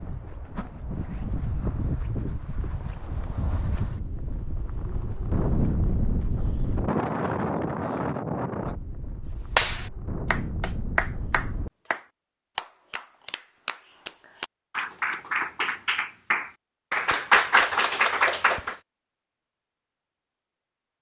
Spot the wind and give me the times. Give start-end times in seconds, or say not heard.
0.0-11.7.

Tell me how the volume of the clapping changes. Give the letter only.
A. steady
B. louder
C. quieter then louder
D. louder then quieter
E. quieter
C.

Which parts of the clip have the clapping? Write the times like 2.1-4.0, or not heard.
9.4-18.8.